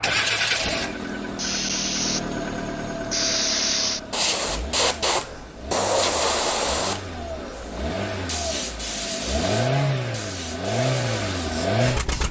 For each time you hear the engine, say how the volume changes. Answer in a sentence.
You can hear the engine from 0.0 to 12.2 s, getting quieter then louder.